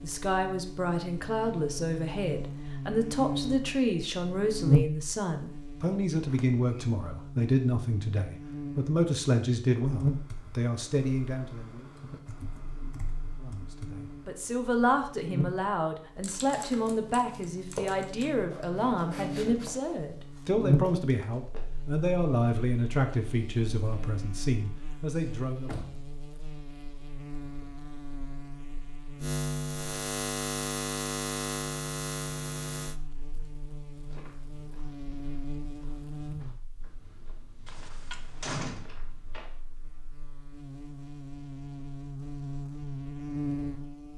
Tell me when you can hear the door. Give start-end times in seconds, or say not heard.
6.2-6.9, 25.1-26.2, 37.6-38.9.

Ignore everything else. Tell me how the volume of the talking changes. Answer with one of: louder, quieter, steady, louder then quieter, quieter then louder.
steady.